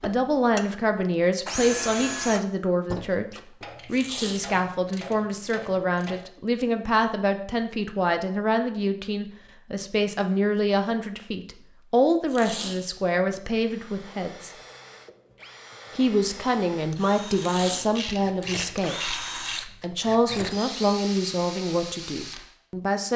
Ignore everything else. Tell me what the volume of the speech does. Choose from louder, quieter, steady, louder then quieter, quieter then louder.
steady.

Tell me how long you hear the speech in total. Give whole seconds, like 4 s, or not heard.
22 s.